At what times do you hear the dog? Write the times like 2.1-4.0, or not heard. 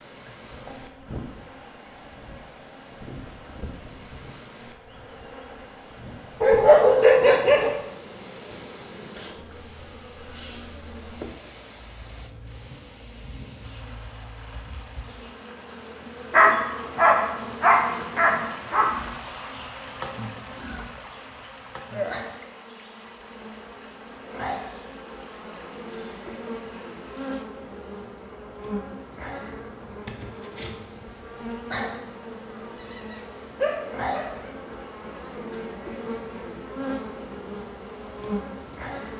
6.4-7.7, 16.3-18.9, 32.8-34.5.